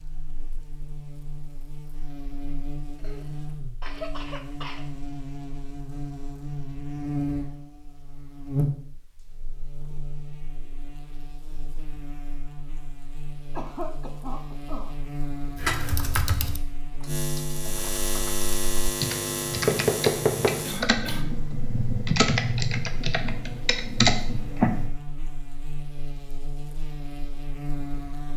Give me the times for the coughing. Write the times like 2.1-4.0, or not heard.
3.0-4.8, 13.5-14.9, 20.6-21.5.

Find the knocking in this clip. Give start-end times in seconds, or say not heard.
19.6-20.6.